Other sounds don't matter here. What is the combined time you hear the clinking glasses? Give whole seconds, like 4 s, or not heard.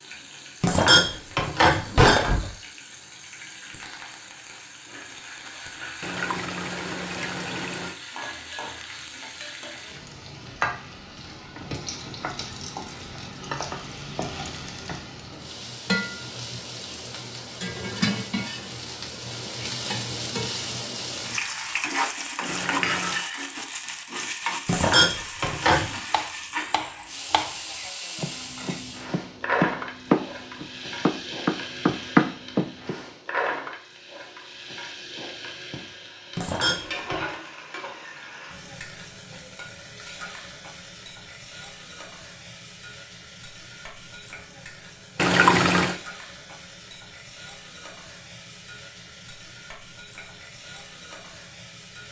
4 s.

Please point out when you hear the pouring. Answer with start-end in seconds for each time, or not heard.
6.0-8.0, 22.4-23.2, 45.1-46.0.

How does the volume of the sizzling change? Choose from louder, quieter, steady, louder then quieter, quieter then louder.
louder then quieter.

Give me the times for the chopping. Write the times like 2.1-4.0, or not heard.
26.1-33.0.